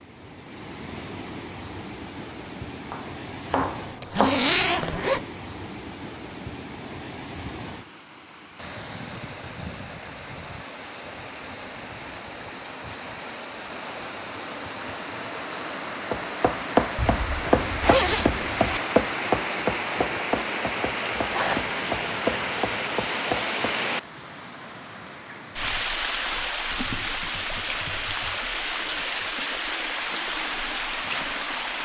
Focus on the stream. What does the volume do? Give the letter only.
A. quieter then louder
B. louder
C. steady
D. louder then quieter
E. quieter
B.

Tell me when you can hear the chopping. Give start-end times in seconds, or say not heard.
2.8-4.4, 16.1-23.8.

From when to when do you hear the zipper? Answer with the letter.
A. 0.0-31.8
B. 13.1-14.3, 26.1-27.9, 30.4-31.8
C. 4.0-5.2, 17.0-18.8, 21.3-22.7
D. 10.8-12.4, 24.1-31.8
C.